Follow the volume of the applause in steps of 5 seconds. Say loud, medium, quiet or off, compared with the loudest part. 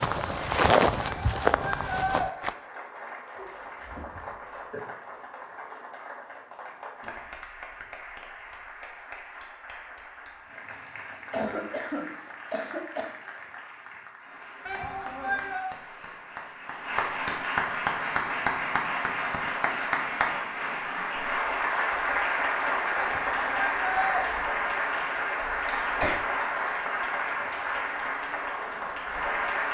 quiet, quiet, quiet, loud, loud, loud.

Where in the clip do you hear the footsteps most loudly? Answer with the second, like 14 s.
1 s.